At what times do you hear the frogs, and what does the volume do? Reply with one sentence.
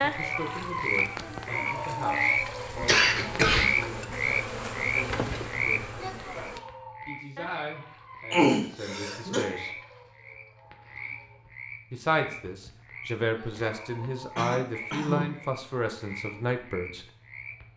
The frogs can be heard from 0.0 to 17.7 s, getting quieter.